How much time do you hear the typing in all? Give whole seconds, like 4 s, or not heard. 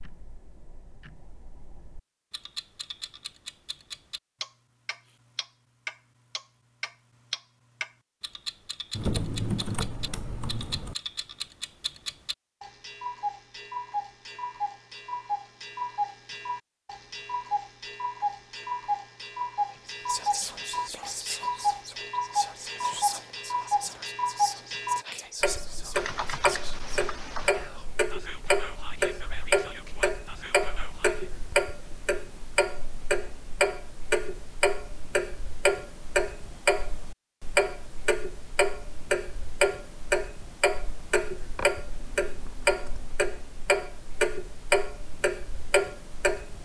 5 s.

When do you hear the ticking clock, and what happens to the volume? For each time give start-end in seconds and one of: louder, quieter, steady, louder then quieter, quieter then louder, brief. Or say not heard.
0.0-46.5 louder.